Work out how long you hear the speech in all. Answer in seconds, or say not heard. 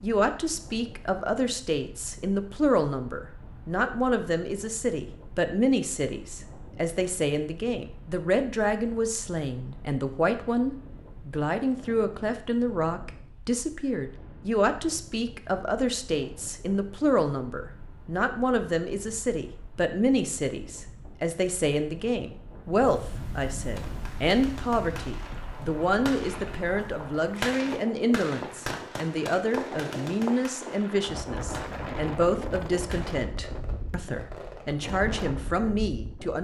36 s.